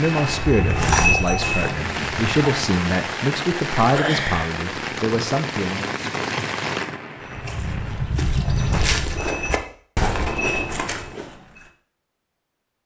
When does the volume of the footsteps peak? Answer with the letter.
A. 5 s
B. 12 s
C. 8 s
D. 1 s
D.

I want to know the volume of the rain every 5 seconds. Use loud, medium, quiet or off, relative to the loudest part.
loud, loud, off.